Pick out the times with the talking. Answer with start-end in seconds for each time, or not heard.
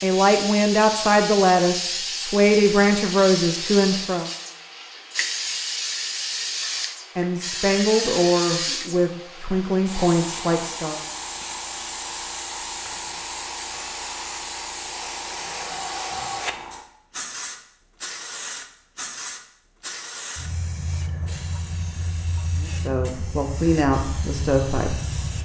0.0-4.3, 7.2-11.0, 22.6-24.9.